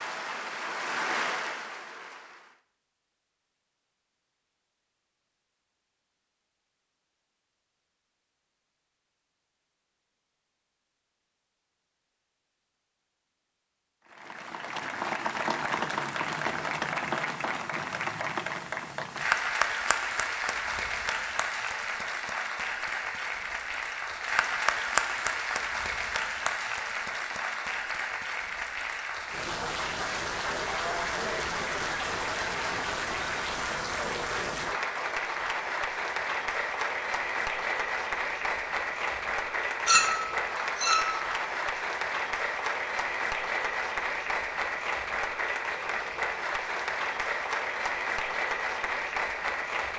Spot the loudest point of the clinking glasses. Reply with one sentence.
The volume of the clinking glasses peaks at 40 seconds.